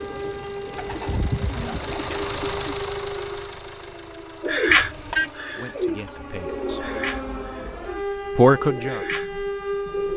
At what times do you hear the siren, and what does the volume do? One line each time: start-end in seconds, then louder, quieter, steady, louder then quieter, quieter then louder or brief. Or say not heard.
0.0-10.1 quieter then louder.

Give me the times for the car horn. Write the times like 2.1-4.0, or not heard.
4.7-5.3.